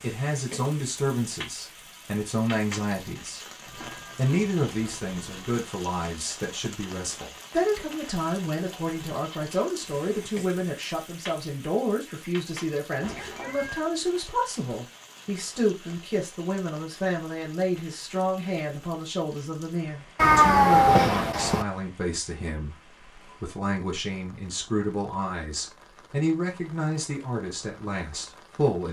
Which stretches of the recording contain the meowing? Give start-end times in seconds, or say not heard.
3.6-5.6, 13.0-13.9, 20.1-21.6.